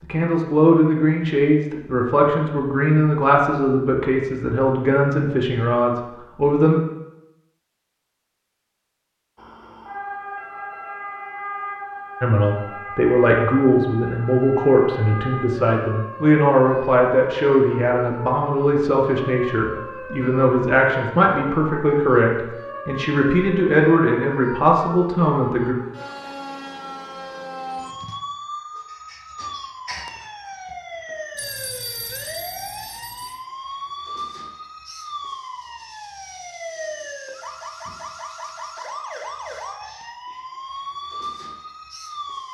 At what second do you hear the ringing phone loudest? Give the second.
32 s.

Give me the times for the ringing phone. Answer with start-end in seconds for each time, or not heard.
31.4-33.4.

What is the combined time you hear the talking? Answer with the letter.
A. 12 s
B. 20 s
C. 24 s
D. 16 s
B.